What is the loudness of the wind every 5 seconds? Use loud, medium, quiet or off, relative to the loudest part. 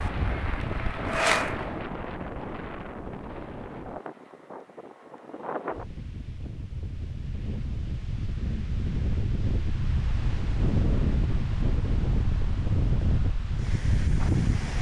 medium, medium, loud.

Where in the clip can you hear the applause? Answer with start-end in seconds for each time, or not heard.
0.0-1.9.